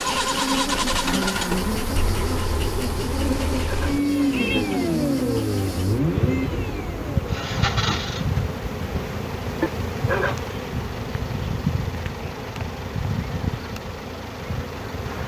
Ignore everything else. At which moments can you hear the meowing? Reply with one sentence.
The meowing can be heard from 3.2 to 4.7 s and from 9.6 to 10.5 s.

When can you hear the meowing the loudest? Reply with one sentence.
The loudest moment of the meowing is at 10 seconds.